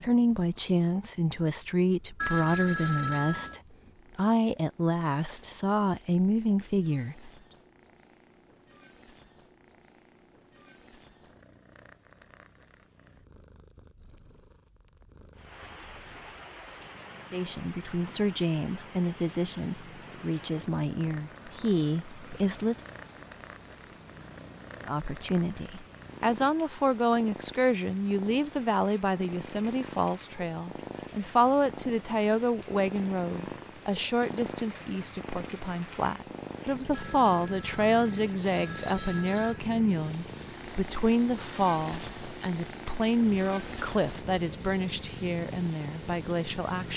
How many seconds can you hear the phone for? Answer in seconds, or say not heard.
4 s.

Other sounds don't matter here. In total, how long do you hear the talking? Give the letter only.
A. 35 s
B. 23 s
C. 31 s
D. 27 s
A.